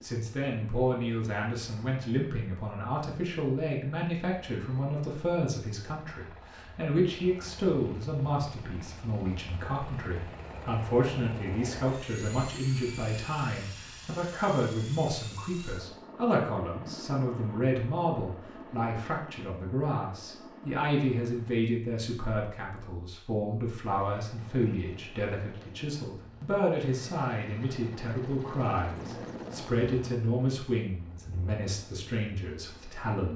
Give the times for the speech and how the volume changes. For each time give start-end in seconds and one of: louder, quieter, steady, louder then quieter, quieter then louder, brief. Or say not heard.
0.0-33.3 steady.